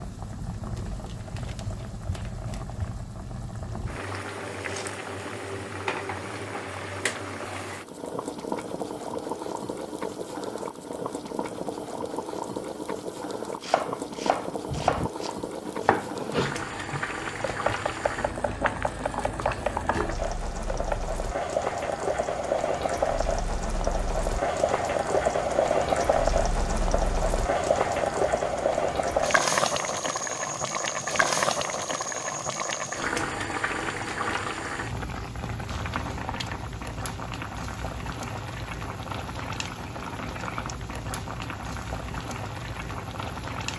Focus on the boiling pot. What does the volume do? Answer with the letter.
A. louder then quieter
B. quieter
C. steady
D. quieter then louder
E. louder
A.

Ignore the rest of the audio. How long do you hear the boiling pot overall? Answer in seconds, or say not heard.
44 s.